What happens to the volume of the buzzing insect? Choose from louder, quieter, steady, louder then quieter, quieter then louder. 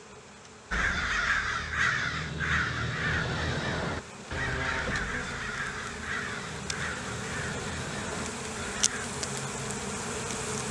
louder.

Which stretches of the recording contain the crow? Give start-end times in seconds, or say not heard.
0.7-9.1.